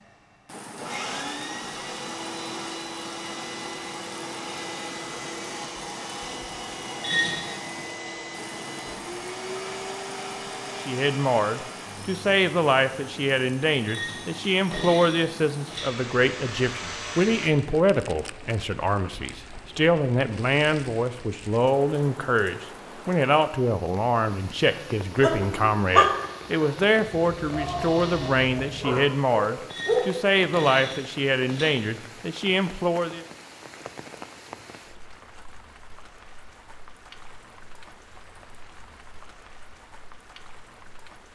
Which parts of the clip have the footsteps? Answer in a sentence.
You can't hear the footsteps here.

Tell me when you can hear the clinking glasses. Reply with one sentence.
The clinking glasses can be heard from 7.0 to 7.5 s, from 13.8 to 15.9 s and from 29.7 to 31.7 s.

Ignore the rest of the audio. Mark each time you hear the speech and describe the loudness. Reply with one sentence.
You can hear the speech from 10.7 to 33.2 s, at a steady volume.